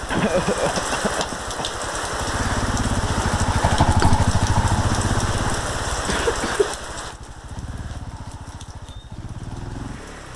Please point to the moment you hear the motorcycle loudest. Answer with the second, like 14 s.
4 s.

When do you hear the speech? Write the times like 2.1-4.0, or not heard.
not heard.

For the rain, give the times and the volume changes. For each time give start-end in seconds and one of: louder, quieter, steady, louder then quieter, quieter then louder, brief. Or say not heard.
0.0-10.3 quieter.